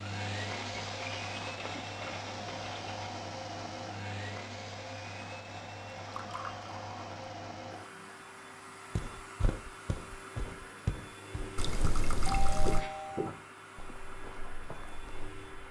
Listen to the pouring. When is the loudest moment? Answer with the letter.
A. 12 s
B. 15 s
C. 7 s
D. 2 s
A.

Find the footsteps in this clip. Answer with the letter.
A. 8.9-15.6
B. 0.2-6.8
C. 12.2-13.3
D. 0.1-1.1
A.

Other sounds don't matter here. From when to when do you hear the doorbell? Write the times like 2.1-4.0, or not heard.
12.2-13.3.